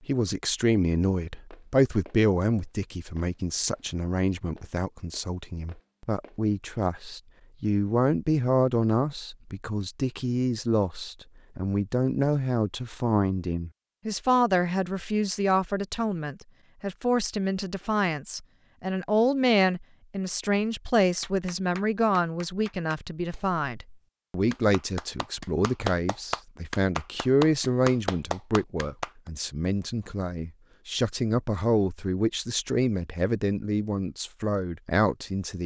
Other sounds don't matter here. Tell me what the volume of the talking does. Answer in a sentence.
The loudness of the talking stays about the same.